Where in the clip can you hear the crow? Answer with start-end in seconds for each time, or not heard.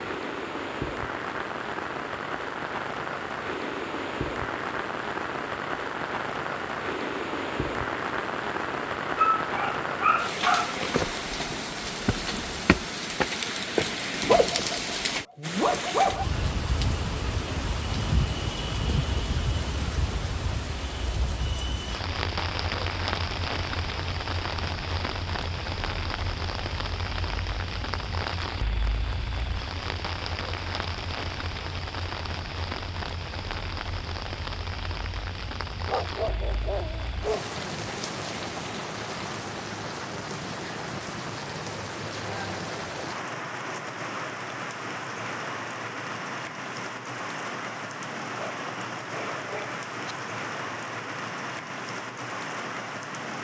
not heard.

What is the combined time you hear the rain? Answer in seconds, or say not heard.
53 s.